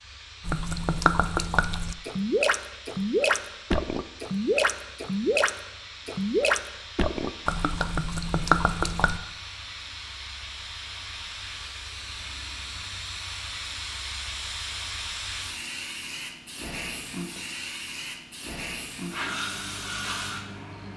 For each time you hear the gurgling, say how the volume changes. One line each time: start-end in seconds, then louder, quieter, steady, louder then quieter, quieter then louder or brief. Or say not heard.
0.4-9.2 steady.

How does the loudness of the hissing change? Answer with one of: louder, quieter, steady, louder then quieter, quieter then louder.
louder.